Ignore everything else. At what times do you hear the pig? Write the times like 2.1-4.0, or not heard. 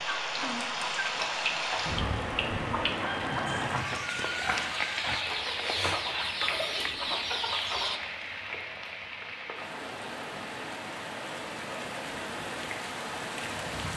3.5-5.2.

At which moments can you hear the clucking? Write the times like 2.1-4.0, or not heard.
0.0-8.0.